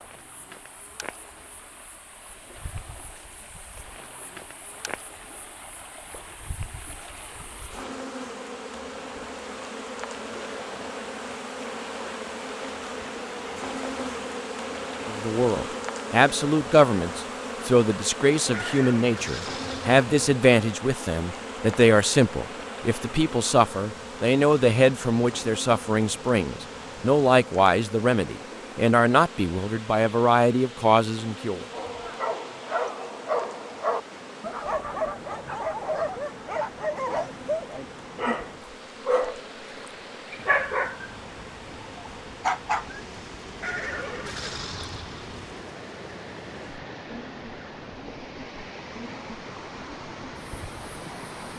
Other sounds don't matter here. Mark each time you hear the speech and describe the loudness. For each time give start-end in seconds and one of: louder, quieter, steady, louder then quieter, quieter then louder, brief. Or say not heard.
15.1-31.6 steady.